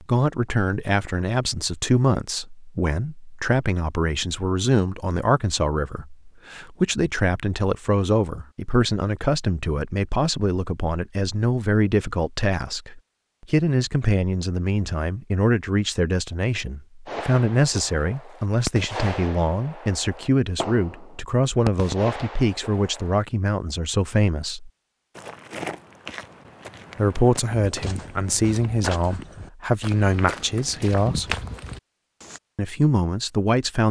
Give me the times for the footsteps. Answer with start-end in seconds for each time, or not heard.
25.1-32.4.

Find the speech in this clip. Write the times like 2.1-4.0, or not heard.
0.0-24.7, 26.9-31.4, 32.5-33.8.